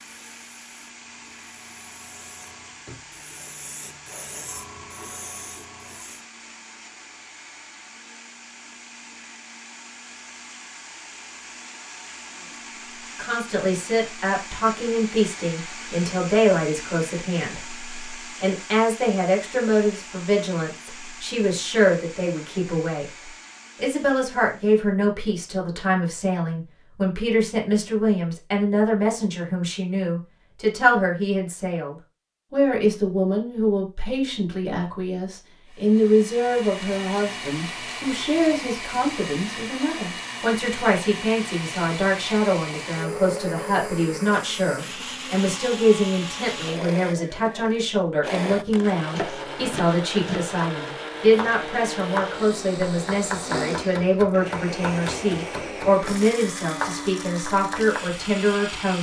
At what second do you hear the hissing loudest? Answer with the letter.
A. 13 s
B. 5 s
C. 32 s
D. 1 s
B.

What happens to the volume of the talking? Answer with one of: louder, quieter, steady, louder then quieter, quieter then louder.
steady.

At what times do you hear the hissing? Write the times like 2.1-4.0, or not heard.
0.0-6.2.